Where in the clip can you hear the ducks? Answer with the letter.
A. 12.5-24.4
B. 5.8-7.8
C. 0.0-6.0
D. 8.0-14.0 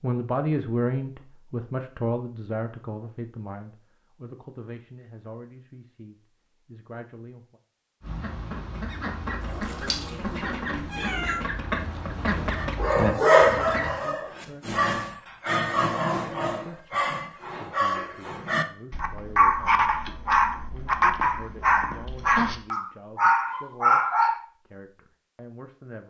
D.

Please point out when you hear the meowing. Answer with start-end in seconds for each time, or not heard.
9.4-11.4.